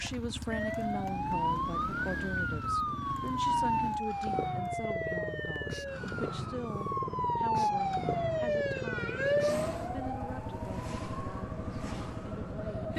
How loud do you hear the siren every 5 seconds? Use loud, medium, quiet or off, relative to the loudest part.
loud, loud, medium.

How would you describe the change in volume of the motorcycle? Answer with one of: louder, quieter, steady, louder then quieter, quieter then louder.
steady.